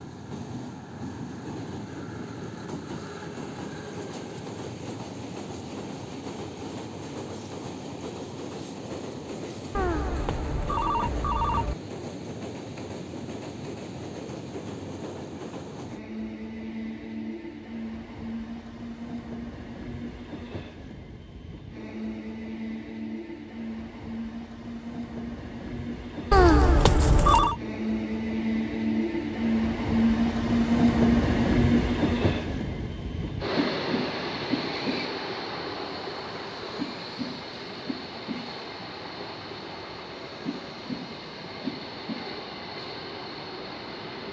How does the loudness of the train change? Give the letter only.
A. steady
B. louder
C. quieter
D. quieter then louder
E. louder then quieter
E.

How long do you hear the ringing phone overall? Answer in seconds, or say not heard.
3 s.